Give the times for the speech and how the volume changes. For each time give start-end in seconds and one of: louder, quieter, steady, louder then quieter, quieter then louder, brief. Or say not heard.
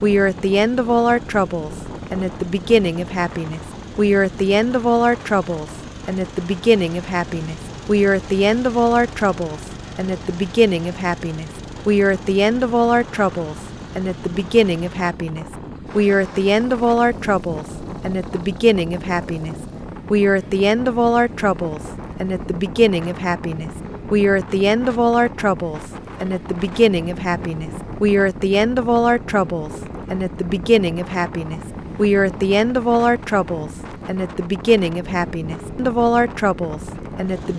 0.0-37.5 steady.